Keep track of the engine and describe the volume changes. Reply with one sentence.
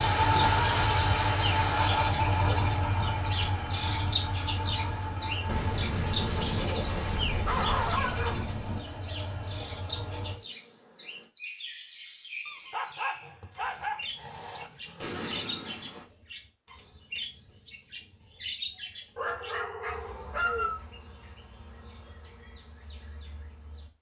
The volume of the engine goes down.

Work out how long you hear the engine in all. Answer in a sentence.
You can hear the engine for 10 seconds altogether.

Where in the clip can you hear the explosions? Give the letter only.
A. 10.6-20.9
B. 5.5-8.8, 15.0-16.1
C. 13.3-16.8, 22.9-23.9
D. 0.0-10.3
B.